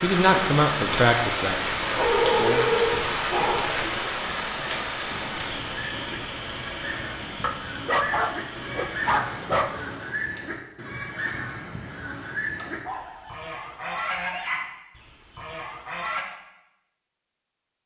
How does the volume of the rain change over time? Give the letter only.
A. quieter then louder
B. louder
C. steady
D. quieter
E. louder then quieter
D.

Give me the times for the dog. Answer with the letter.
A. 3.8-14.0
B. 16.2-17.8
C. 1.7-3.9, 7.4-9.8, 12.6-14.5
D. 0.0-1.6
C.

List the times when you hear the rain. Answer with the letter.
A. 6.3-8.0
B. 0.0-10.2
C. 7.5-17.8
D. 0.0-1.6
B.